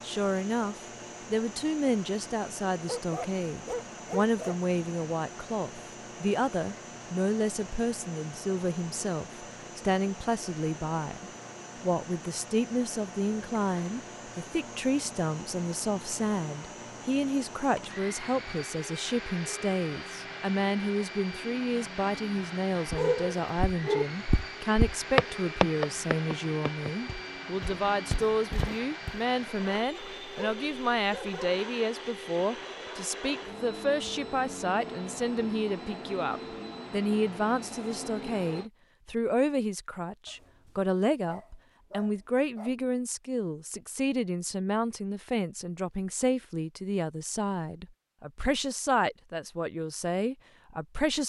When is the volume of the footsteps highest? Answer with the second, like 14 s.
25 s.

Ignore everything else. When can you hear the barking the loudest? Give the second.
23 s.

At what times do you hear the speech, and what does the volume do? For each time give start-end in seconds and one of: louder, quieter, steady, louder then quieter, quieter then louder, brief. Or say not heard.
0.0-51.2 steady.